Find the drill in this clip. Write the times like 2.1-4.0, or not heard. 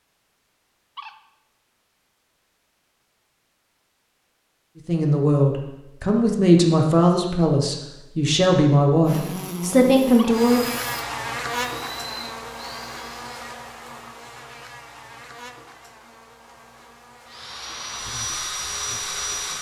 10.4-13.5, 17.2-19.5.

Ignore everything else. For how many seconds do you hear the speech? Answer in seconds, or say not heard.
6 s.